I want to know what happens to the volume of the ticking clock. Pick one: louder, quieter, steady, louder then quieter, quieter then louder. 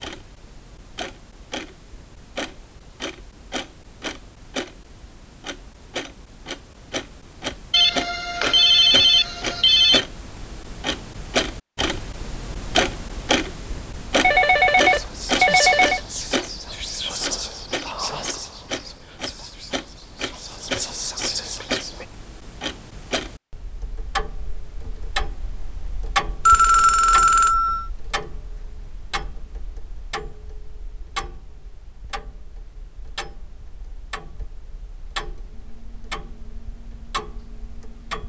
louder then quieter.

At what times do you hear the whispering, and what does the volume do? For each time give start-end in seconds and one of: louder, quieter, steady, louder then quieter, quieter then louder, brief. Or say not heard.
14.8-22.1 quieter then louder.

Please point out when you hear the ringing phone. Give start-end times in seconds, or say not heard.
7.7-10.1, 14.2-16.0, 26.4-27.9.